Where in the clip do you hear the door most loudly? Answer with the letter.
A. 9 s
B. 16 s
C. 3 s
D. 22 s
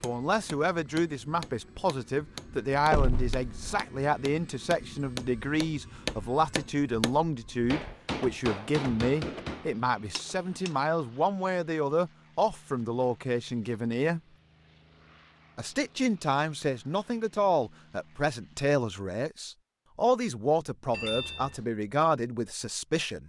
C.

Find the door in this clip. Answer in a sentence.
You can hear the door from 2.9 to 3.8 s, from 8.2 to 9.4 s and from 20.9 to 21.6 s.